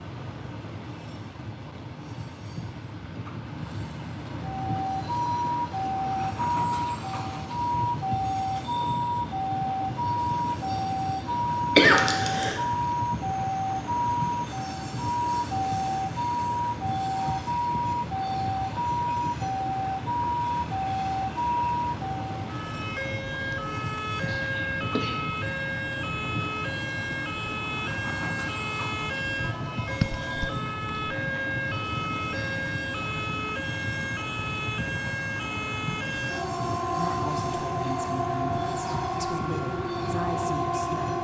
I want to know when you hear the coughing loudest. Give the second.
12 s.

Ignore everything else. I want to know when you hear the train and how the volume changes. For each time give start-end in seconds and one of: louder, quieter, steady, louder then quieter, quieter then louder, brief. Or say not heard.
0.0-41.1 steady.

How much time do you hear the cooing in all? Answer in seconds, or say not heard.
not heard.